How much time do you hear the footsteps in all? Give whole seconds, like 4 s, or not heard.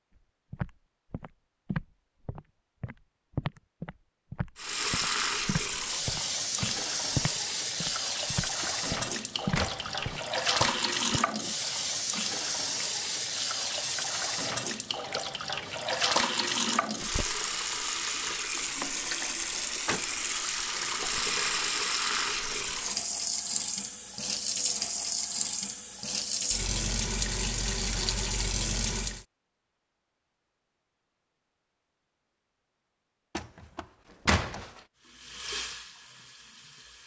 11 s.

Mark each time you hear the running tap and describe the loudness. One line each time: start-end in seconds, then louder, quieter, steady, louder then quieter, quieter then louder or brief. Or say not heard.
4.5-29.2 steady
35.0-37.0 brief.